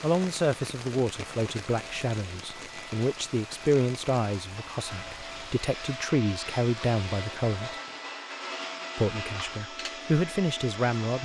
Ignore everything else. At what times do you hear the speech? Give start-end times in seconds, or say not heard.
0.0-7.8, 8.9-11.1.